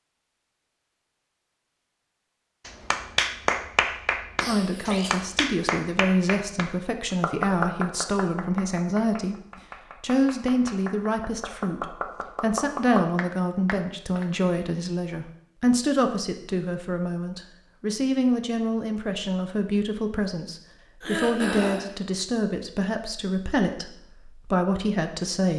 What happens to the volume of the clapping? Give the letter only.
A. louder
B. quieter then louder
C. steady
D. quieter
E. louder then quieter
B.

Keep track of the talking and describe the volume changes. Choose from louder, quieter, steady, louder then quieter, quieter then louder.
steady.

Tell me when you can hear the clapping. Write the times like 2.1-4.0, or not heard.
2.6-14.2.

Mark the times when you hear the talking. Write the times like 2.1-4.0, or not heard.
4.5-9.3, 10.0-25.5.